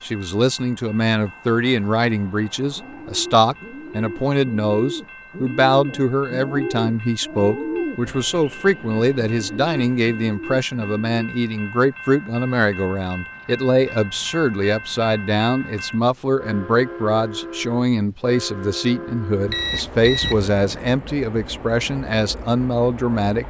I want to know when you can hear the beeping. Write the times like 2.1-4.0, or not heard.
19.4-20.6.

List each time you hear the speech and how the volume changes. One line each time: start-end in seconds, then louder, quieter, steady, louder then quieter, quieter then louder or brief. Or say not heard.
0.0-23.4 steady.